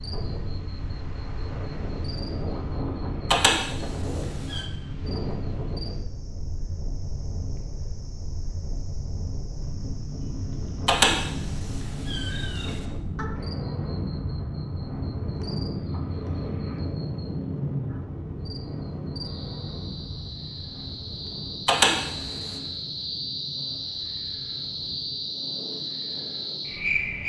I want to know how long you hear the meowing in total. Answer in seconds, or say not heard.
4 s.